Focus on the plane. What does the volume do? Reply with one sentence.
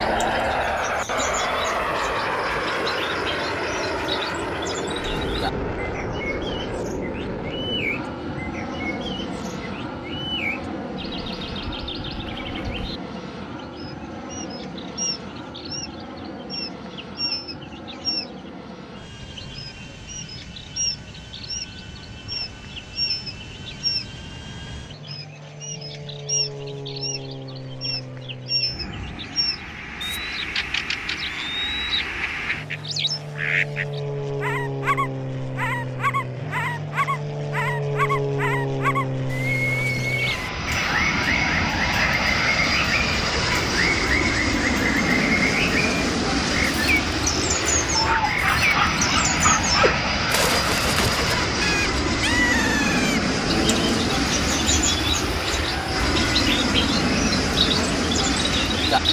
The volume of the plane goes down, then up.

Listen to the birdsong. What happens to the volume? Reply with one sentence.
The loudness of the birdsong goes up.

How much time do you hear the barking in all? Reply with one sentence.
You can hear the barking for 2 seconds altogether.